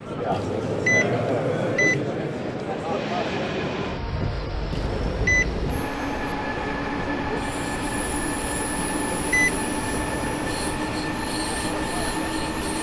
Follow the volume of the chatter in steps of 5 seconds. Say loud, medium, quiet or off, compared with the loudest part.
loud, medium, medium.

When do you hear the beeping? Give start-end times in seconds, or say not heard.
0.3-2.0, 4.7-6.0, 8.8-10.0.